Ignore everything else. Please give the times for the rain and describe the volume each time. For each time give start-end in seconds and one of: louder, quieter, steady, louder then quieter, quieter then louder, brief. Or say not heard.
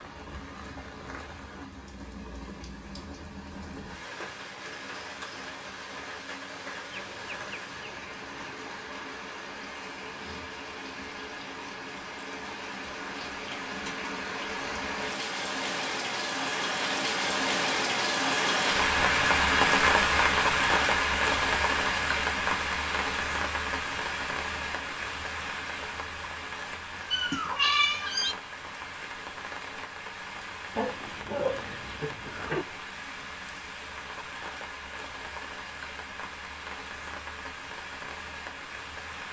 0.0-39.2 louder then quieter.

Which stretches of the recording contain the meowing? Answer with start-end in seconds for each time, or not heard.
27.1-28.4.